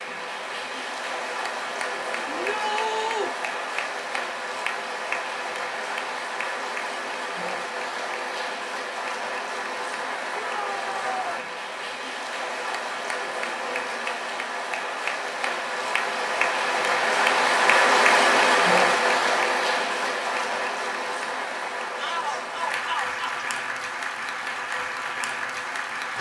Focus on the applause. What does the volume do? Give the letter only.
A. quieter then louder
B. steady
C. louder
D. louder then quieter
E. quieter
D.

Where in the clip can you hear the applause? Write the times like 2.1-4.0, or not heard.
0.0-26.1.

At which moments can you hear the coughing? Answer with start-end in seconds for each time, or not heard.
not heard.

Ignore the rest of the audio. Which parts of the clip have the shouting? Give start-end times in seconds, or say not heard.
2.2-3.3, 10.4-11.4, 21.9-23.4.